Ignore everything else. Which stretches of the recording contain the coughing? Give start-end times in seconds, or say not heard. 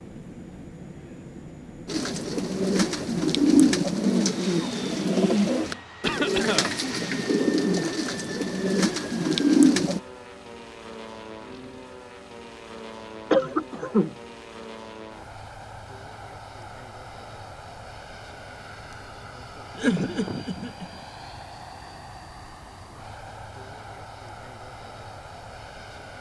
6.0-6.7, 13.3-14.2, 19.8-20.9.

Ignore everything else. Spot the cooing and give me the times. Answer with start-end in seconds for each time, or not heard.
1.9-10.0.